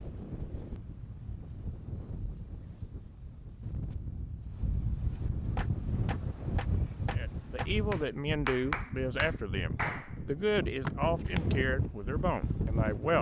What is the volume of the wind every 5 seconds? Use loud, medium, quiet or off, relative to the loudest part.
medium, loud, loud.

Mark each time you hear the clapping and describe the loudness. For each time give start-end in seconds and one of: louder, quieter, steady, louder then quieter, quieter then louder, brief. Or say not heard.
5.5-11.6 louder then quieter.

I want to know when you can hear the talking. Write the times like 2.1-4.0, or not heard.
7.2-13.1.